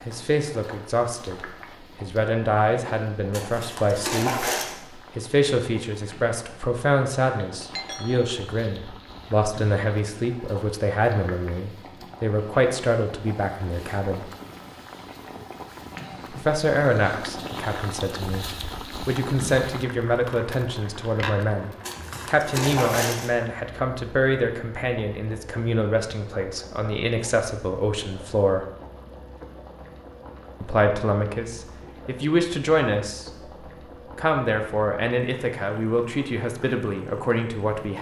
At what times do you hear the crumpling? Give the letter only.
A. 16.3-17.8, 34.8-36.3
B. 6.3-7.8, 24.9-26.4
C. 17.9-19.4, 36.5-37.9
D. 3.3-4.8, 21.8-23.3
D.